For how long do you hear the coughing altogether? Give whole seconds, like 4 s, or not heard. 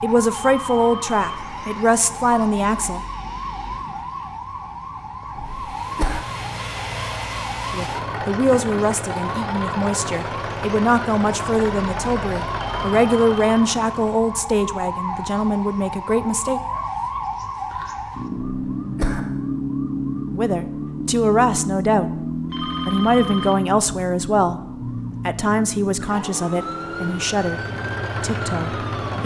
2 s.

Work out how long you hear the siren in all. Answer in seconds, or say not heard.
29 s.